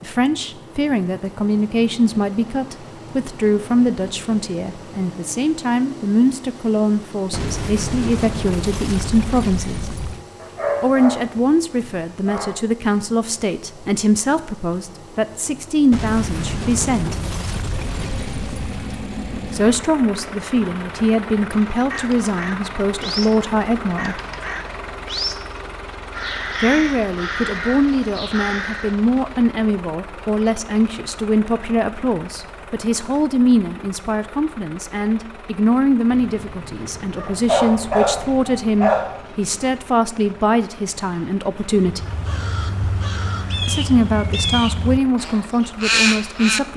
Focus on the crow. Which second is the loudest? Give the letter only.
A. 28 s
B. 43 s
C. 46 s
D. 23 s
C.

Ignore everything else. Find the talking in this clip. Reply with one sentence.
The talking can be heard from 0.0 to 9.8 s, from 10.8 to 17.1 s, from 19.4 to 24.2 s, from 26.6 to 42.0 s and from 43.6 to 46.7 s.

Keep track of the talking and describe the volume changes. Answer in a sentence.
The volume of the talking stays about the same.